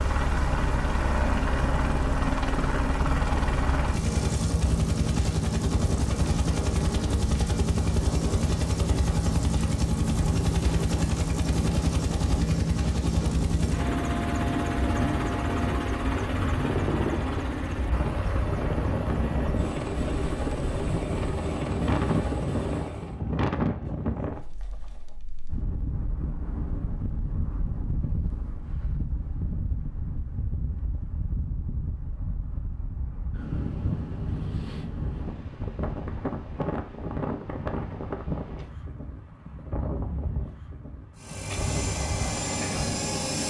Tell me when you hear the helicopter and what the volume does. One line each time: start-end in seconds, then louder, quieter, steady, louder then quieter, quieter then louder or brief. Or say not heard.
0.0-23.2 steady
41.1-43.4 brief.